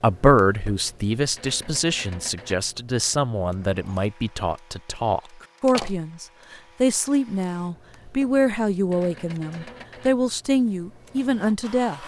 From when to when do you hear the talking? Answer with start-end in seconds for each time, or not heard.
0.0-12.0.